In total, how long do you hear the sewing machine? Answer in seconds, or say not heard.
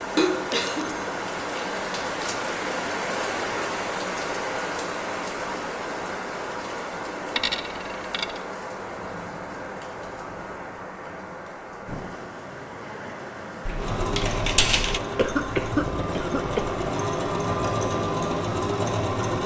6 s.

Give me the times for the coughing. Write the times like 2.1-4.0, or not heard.
0.1-0.8, 15.2-16.8.